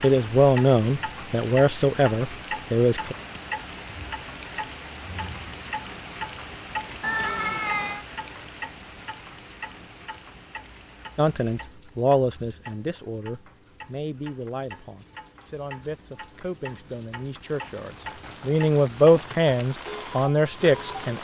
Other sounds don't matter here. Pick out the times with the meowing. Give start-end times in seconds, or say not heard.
7.0-8.1.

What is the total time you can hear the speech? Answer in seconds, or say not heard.
13 s.